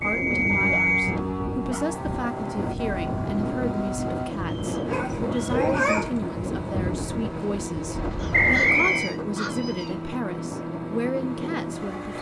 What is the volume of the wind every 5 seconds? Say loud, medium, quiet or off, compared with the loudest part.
loud, loud, off.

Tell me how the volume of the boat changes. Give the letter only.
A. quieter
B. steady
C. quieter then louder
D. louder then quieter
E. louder
B.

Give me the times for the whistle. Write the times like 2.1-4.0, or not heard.
0.0-1.2, 4.5-5.7, 8.3-9.1.